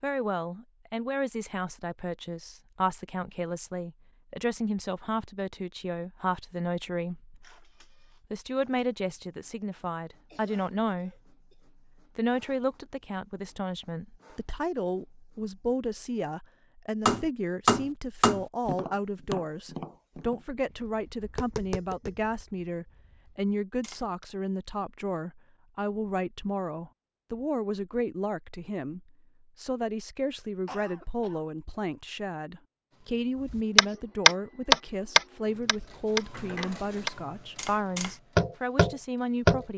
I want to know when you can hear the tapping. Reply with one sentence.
You can hear the tapping from 17.1 to 24.2 s and from 33.5 to 39.6 s.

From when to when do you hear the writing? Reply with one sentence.
The writing can't be heard in this clip.